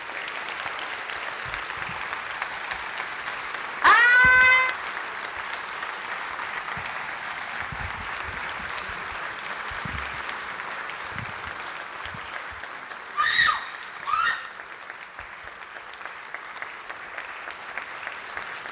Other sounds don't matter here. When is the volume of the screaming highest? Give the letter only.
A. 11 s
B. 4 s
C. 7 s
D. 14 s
B.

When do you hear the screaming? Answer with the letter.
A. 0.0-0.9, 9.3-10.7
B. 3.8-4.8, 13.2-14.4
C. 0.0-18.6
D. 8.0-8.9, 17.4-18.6
B.